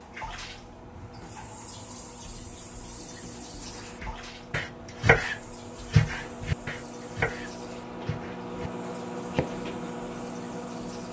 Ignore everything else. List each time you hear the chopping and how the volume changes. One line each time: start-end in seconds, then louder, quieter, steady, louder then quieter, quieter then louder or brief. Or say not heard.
4.0-9.7 quieter.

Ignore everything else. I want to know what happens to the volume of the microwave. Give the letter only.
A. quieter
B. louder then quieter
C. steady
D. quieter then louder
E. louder
E.